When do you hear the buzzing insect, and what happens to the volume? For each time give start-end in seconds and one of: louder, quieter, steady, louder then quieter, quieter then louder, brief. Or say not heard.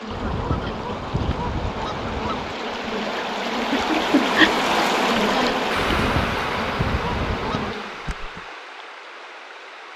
0.0-8.4 louder then quieter.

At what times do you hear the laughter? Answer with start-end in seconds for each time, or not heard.
3.5-4.5.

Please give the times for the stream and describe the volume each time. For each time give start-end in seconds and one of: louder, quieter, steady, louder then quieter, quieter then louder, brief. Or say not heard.
0.0-9.9 louder then quieter.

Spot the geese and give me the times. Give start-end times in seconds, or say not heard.
0.1-2.5, 5.8-7.8.